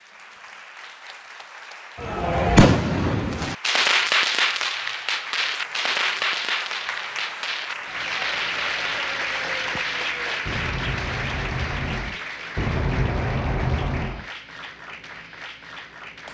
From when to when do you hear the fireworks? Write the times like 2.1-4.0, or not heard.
1.9-14.2.